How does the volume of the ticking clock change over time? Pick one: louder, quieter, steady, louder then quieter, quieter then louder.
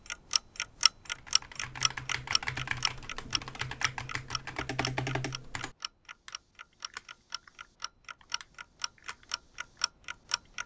quieter then louder.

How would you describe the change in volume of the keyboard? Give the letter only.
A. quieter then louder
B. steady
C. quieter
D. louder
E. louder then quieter
C.